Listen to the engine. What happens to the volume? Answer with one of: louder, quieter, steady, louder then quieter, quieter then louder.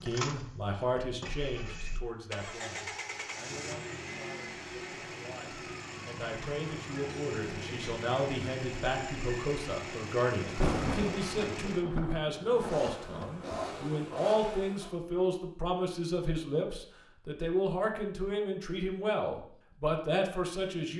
steady.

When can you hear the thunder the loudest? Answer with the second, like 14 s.
11 s.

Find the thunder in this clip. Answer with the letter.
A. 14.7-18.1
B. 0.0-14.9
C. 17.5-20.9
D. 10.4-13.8
D.